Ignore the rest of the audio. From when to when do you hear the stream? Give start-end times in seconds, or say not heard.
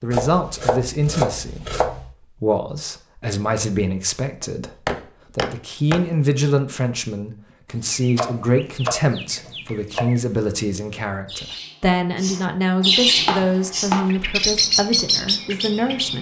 not heard.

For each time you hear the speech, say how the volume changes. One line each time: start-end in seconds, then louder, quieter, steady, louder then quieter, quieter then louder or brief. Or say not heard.
0.0-16.1 steady.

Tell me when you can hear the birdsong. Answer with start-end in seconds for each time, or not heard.
7.5-16.1.